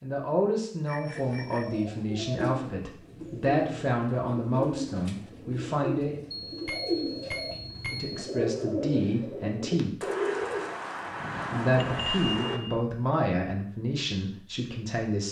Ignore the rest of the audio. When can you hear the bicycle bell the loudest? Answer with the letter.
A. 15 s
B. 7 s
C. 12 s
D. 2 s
C.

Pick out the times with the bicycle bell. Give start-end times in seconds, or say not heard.
0.8-1.9, 6.5-8.2, 11.8-12.8.